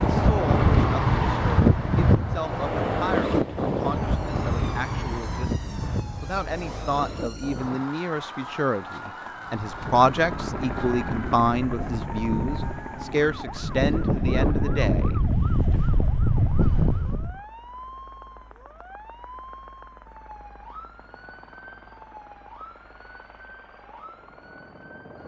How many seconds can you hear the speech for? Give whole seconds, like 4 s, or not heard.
16 s.